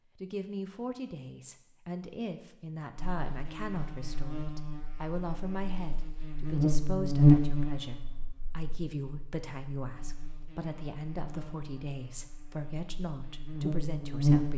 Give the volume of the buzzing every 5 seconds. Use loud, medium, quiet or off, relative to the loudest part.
quiet, loud, medium.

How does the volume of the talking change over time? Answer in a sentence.
The volume of the talking stays about the same.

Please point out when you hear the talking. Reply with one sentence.
You can hear the talking from 0.1 to 14.5 s.